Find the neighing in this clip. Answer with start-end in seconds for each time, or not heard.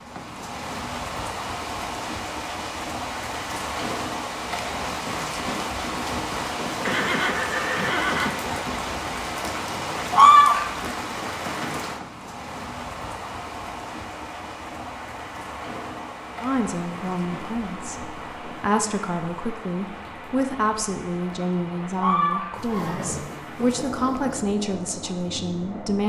6.8-8.7, 22.6-24.4.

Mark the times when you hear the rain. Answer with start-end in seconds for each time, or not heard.
0.0-26.0.